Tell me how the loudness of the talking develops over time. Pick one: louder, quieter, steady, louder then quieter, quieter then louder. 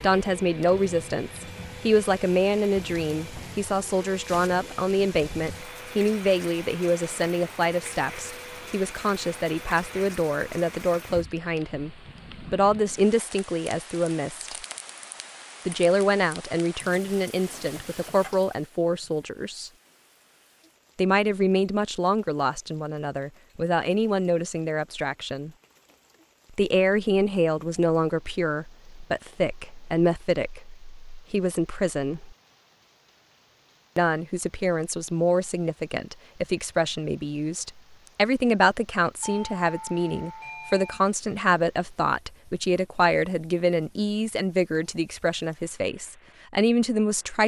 steady.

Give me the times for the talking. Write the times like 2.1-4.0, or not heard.
0.0-14.6, 15.7-19.7, 20.9-25.5, 26.6-32.4, 34.0-47.4.